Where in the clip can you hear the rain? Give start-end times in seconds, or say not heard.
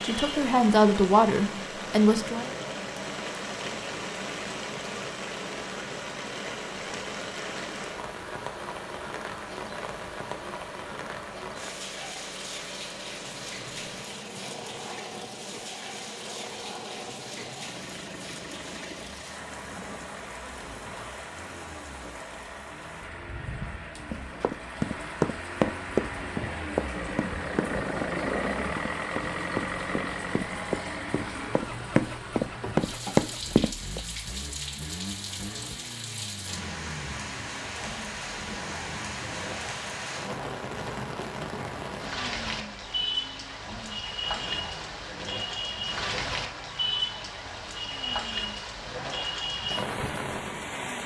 0.0-51.0.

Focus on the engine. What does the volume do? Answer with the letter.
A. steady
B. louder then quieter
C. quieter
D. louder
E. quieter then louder
B.